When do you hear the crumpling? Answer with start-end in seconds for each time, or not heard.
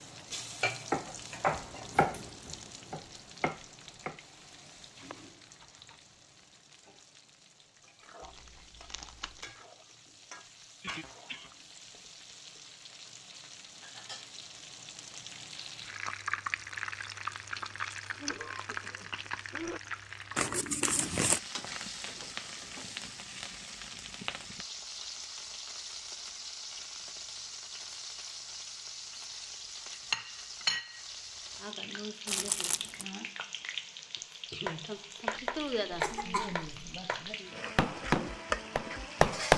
8.2-9.6, 20.4-21.4, 32.2-33.0.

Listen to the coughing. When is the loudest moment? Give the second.
36 s.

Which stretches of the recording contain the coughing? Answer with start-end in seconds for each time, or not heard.
10.8-11.5, 18.1-19.8, 35.3-37.0.